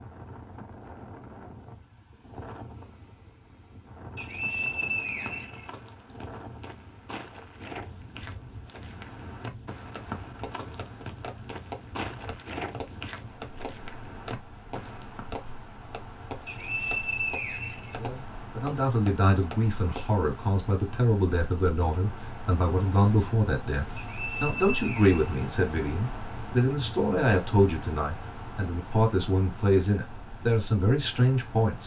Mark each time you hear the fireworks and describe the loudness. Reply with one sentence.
The fireworks can be heard from 9.8 to 20.1 s, at a steady volume.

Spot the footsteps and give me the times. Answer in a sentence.
The footsteps can be heard from 4.5 to 15.4 s.